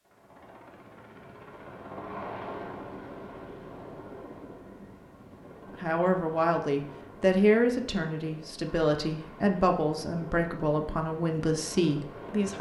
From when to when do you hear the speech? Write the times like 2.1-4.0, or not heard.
5.7-12.5.